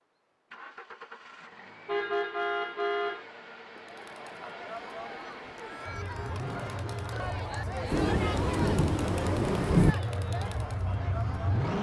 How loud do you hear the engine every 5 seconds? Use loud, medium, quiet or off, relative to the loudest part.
quiet, medium, loud.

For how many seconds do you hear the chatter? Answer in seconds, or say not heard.
8 s.